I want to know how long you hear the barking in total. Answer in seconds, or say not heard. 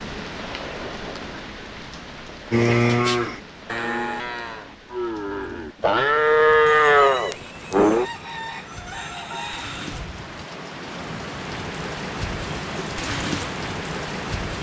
not heard.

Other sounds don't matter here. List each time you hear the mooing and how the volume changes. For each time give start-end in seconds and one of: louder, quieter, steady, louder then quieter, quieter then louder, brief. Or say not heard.
2.5-8.1 quieter then louder.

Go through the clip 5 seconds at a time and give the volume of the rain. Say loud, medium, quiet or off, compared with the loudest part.
medium, medium, loud.